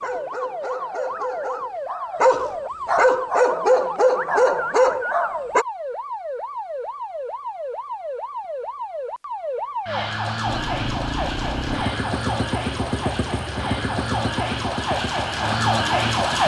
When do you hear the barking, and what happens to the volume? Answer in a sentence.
The barking can be heard from 0.0 to 5.7 s, getting louder.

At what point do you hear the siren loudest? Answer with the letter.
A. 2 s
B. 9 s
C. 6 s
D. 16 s
D.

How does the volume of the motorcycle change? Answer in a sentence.
The volume of the motorcycle goes down.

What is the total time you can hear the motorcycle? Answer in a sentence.
The motorcycle can be heard for 6 seconds in total.